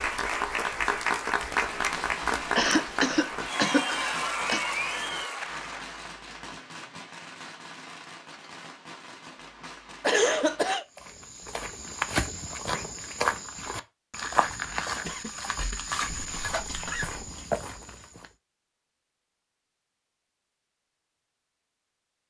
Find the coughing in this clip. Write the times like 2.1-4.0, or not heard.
2.5-4.7, 10.0-10.8, 15.0-17.2.